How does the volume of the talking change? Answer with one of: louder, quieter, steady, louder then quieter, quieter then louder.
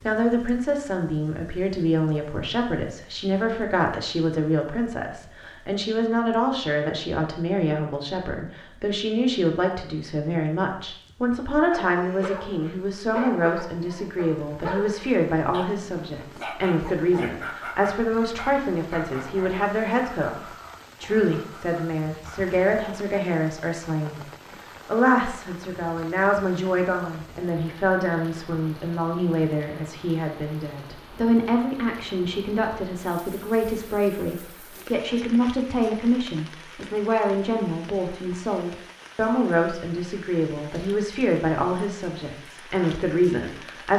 steady.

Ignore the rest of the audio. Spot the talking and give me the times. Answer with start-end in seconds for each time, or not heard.
0.0-24.2, 24.9-43.9.